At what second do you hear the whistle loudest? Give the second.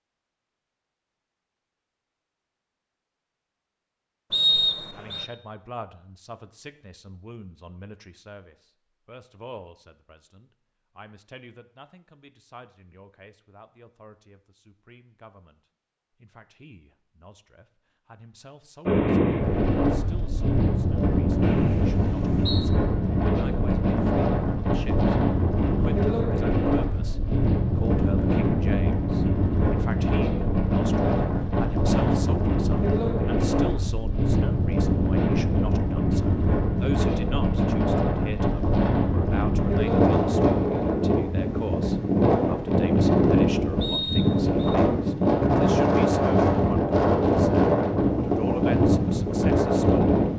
5 s.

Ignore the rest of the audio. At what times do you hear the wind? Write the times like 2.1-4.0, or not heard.
18.9-50.3.